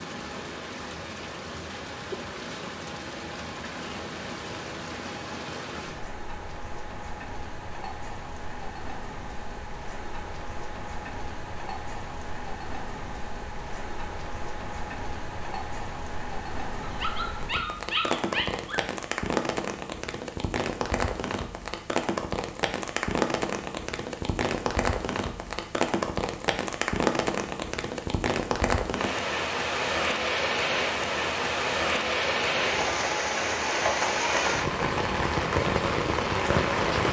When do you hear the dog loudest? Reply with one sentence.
The loudest moment of the dog is at 18 seconds.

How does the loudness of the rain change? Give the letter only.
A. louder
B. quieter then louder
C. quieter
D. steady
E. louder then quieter
A.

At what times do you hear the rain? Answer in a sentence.
You can hear the rain from 0.0 to 37.0 s.